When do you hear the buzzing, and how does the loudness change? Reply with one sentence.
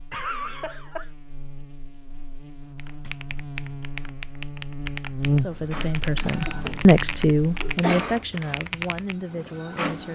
The buzzing can be heard from 0.0 to 7.8 s, getting louder then quieter.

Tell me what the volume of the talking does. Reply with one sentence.
The loudness of the talking goes up, then down.